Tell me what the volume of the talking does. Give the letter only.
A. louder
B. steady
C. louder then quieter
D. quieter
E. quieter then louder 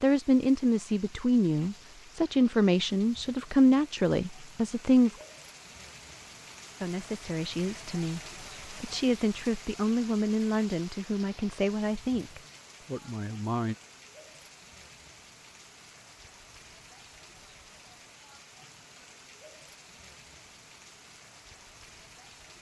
D.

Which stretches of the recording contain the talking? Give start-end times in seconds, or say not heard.
0.0-5.2, 6.8-13.8.